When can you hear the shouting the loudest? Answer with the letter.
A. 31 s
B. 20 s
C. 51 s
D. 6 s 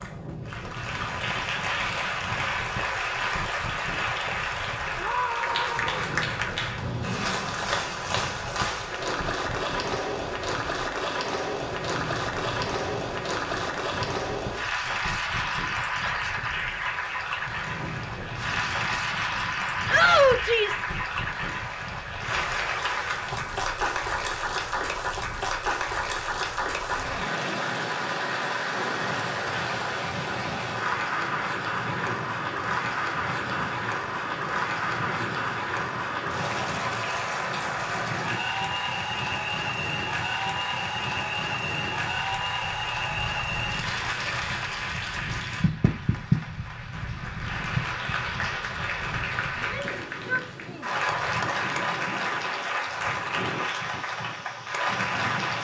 B.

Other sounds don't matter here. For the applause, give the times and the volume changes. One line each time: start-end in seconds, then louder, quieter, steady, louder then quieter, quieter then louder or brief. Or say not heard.
0.0-55.6 steady.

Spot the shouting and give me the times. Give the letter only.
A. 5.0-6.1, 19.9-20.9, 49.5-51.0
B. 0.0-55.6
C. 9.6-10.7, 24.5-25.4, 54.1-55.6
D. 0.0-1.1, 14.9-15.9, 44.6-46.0
A.